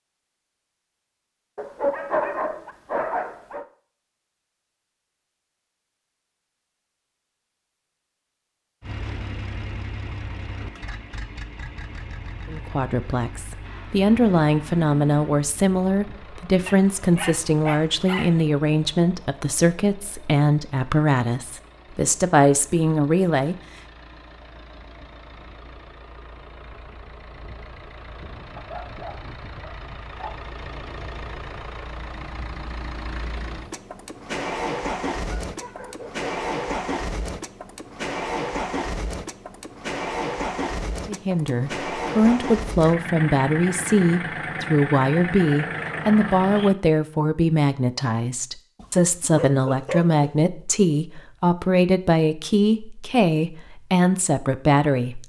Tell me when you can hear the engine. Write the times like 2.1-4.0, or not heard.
8.8-46.8.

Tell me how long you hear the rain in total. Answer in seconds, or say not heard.
not heard.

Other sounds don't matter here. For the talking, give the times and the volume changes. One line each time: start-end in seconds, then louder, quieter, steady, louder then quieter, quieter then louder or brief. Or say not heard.
12.4-23.6 steady
41.0-55.2 steady.